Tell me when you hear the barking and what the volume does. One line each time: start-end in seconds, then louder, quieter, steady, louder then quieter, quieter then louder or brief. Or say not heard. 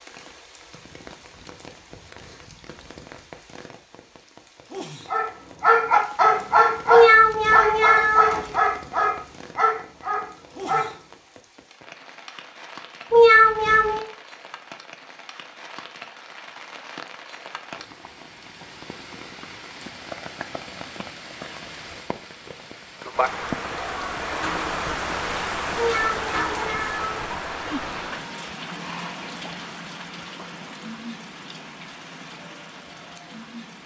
5.0-10.9 quieter.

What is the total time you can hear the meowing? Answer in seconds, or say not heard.
4 s.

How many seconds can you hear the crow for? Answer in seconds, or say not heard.
not heard.